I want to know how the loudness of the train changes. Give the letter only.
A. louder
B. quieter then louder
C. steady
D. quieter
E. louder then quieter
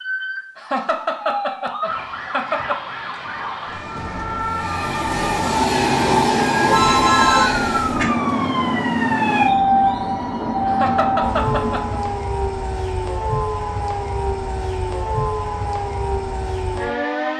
D.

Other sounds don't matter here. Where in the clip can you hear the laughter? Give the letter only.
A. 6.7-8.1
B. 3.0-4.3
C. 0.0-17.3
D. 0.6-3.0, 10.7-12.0
D.